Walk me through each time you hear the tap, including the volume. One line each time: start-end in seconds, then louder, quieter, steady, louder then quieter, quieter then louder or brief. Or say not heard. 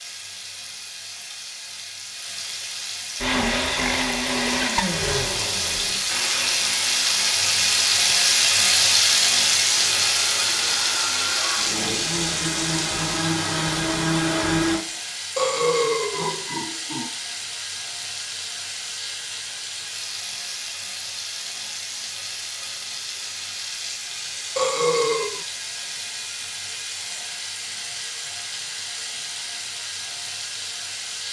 0.0-31.2 louder then quieter.